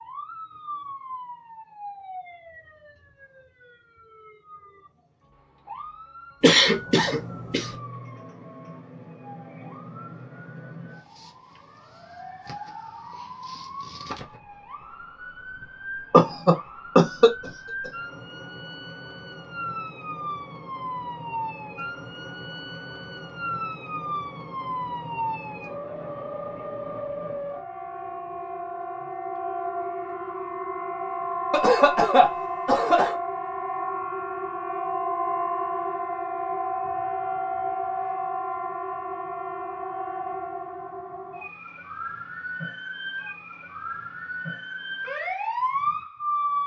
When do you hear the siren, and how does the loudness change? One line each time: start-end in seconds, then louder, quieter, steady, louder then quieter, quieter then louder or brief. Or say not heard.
0.0-46.6 louder.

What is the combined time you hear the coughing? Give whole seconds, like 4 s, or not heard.
5 s.